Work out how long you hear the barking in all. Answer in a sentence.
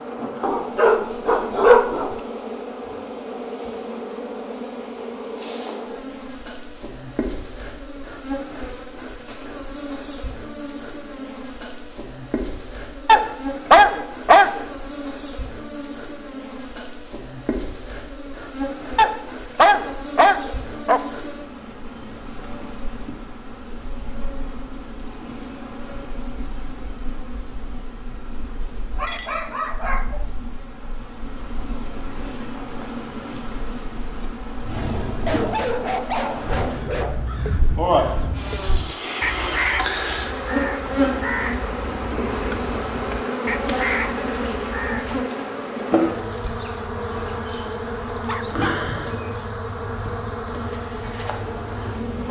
The barking can be heard for 9 seconds in total.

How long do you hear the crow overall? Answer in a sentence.
You can hear the crow for 9 seconds altogether.